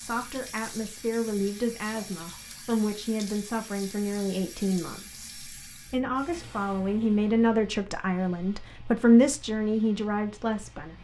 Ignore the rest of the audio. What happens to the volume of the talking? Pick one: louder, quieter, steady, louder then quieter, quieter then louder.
louder.